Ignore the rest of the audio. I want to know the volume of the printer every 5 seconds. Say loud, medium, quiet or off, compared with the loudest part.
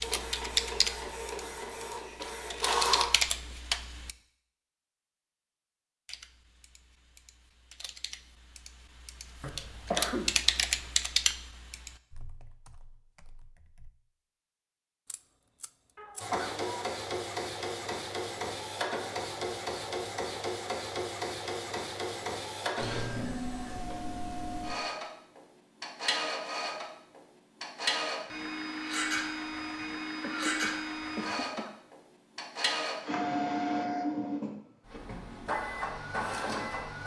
loud, off, off, loud, loud, loud, loud, loud.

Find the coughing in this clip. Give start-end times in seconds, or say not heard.
9.4-10.3, 15.9-16.9, 30.2-31.8.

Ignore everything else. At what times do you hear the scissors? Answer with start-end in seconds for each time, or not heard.
15.1-16.3.